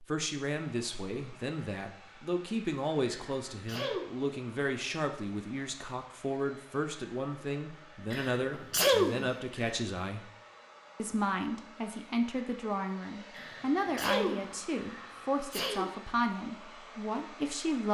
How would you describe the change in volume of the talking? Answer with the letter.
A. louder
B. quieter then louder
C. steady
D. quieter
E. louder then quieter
C.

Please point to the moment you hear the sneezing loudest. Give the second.
9 s.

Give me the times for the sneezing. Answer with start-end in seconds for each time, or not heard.
3.0-4.0, 8.1-9.8, 13.3-15.9.